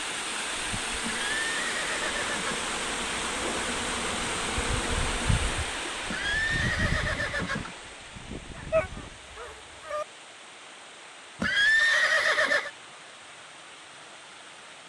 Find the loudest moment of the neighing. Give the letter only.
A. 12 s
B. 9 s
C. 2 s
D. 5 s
A.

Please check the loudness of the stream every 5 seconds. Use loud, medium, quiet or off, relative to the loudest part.
loud, medium, quiet.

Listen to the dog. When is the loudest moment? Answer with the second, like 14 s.
9 s.